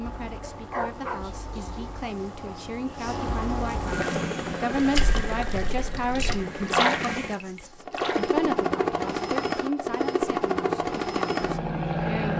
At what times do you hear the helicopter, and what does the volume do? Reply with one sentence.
You can hear the helicopter from 0.0 to 12.3 s, getting louder.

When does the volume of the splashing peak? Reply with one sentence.
The loudest moment of the splashing is at 7 seconds.